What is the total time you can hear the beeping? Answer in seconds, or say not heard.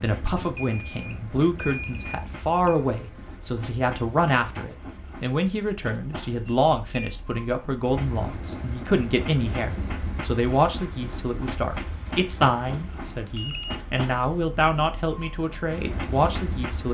4 s.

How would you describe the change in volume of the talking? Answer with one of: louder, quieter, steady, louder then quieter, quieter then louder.
steady.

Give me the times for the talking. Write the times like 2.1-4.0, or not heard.
0.0-16.8.